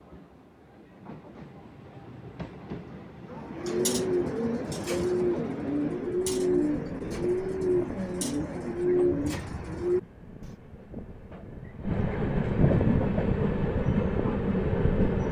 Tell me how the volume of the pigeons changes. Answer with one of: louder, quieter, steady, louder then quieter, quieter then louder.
steady.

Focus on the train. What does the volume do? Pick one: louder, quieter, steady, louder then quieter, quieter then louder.
louder.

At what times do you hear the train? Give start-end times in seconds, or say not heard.
0.0-15.2.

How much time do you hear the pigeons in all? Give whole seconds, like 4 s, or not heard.
7 s.